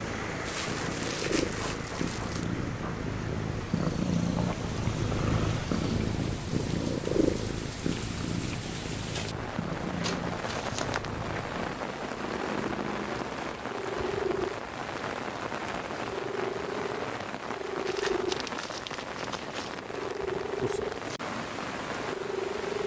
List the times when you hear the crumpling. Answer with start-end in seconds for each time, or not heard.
0.5-2.5, 10.0-11.1, 17.9-19.8.